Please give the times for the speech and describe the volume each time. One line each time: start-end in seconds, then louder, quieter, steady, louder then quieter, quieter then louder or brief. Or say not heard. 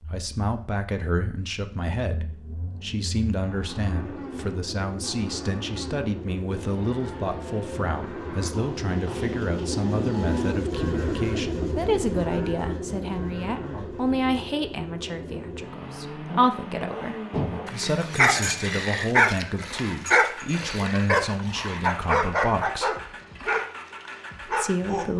0.1-22.9 steady
24.4-25.1 brief.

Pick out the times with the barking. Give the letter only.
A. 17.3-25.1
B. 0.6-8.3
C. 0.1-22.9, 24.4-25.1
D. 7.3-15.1
A.